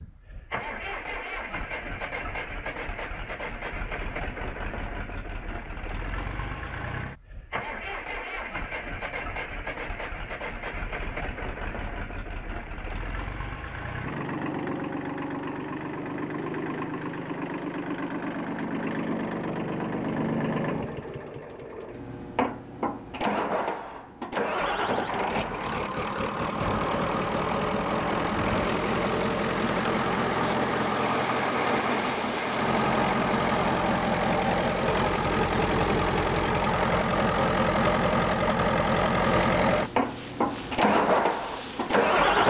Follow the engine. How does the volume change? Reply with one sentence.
The volume of the engine goes up.